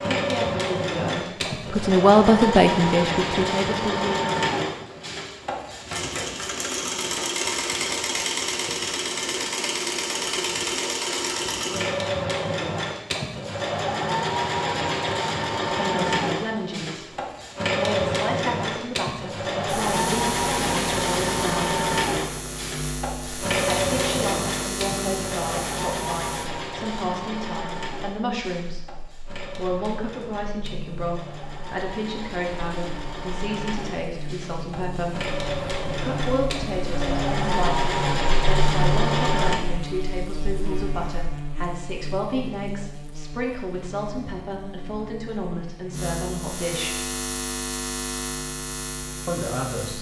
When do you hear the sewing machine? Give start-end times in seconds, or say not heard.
0.0-39.5.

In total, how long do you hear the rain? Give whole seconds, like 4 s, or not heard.
not heard.